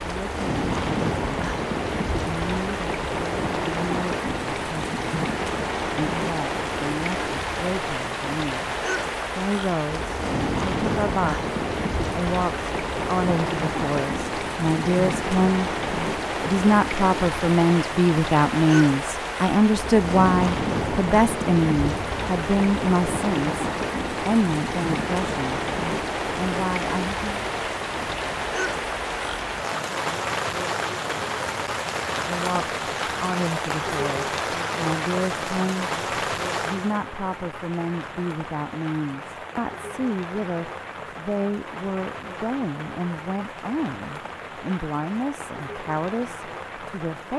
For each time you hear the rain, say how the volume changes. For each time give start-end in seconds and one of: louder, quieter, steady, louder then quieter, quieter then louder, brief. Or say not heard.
0.0-47.3 quieter.